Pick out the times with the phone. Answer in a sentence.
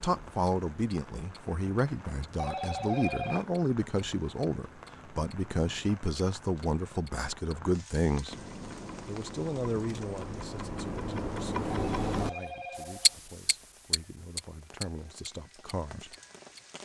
The phone can be heard from 2.4 to 3.5 s and from 11.8 to 13.2 s.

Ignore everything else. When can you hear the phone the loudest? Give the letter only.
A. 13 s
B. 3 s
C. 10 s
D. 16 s
B.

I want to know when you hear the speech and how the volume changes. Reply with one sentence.
You can hear the speech from 0.0 to 8.3 s, at a steady volume; and from 9.1 to 16.1 s, getting quieter then louder.